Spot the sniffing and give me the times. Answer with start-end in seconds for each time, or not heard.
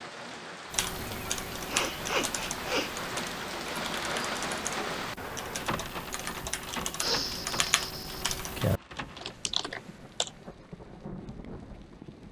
0.9-2.9, 7.0-8.4.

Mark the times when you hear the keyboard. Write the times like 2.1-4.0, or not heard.
0.7-10.3.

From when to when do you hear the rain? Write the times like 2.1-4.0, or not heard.
0.0-12.2.